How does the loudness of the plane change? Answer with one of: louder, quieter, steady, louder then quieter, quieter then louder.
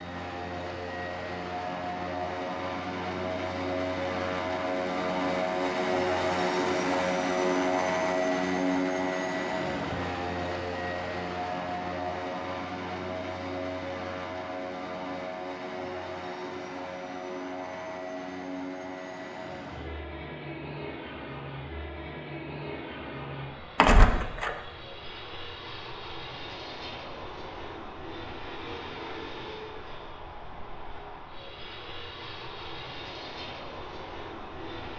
quieter.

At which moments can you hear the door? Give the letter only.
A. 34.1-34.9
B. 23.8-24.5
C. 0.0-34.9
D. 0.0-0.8
B.